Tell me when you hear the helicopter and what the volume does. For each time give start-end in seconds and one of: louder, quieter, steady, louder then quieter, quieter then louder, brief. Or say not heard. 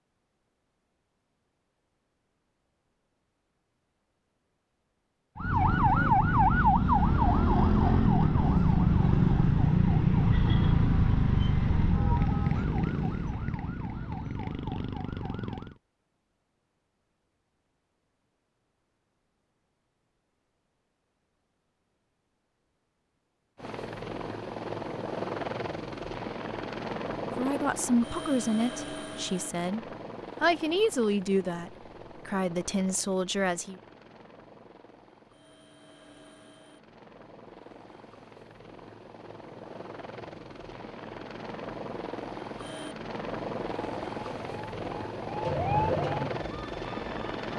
23.6-47.5 quieter then louder.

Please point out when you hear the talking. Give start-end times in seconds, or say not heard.
27.4-29.8, 30.4-33.8.